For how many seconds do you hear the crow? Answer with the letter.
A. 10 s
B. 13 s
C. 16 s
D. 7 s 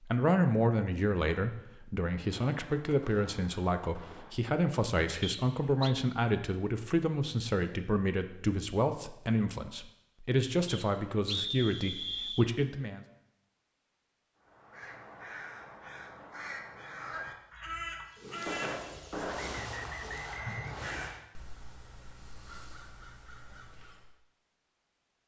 A.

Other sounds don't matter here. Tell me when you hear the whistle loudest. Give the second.
11 s.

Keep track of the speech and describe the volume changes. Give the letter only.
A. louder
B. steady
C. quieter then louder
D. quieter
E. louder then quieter
B.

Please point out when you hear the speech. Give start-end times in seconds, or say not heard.
0.0-13.1.